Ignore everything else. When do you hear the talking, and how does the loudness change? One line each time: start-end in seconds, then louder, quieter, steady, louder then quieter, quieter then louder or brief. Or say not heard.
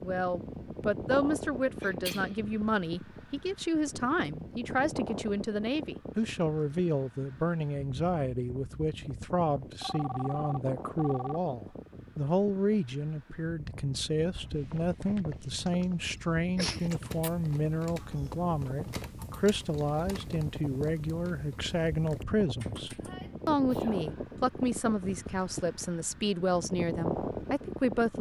0.0-28.1 steady.